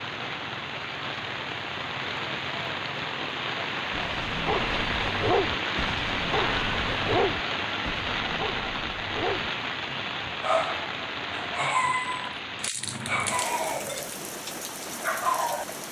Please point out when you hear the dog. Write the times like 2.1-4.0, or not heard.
3.9-14.2, 15.0-15.7.